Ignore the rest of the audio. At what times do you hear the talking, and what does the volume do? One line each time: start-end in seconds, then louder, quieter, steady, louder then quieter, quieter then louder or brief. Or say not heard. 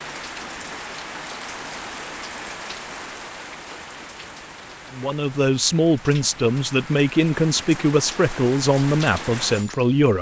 4.9-10.1 steady.